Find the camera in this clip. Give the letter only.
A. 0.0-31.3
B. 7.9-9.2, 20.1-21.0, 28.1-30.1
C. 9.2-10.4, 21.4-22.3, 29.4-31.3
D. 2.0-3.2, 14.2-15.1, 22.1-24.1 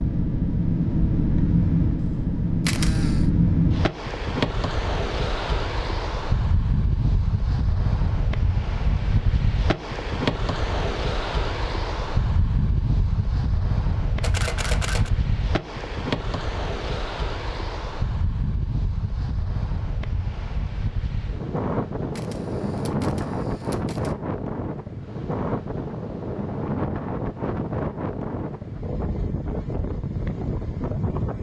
D.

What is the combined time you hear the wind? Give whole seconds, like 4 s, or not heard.
31 s.